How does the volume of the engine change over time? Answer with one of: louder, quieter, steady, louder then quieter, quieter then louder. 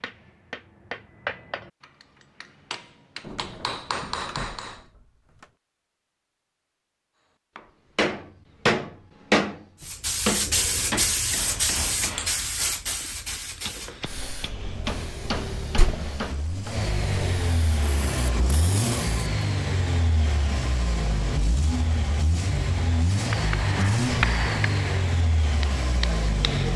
louder.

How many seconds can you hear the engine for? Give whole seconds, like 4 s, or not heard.
12 s.